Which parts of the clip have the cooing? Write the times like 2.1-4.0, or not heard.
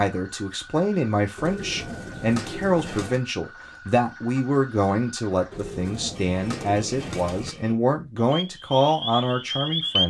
1.4-3.2, 5.5-7.5.